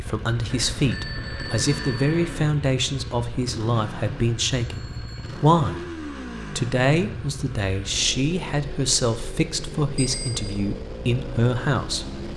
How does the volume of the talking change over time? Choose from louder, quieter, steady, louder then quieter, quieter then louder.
steady.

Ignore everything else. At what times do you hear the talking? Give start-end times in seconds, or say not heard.
0.0-5.8, 6.5-12.1.